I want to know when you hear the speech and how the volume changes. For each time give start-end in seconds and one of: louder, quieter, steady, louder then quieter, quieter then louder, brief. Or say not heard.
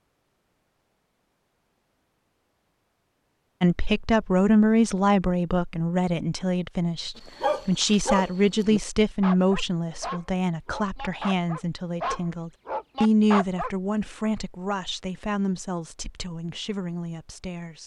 3.6-17.8 quieter.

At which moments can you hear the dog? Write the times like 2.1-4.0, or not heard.
7.2-13.7.